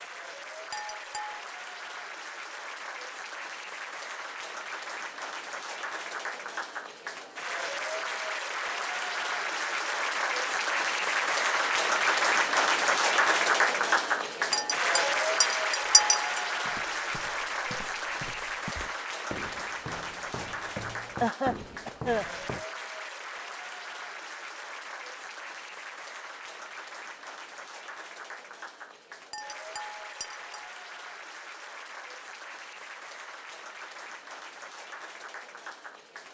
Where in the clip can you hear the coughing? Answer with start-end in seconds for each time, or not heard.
21.2-22.2.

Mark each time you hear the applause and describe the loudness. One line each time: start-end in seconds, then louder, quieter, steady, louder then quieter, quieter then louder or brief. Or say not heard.
0.0-36.3 louder then quieter.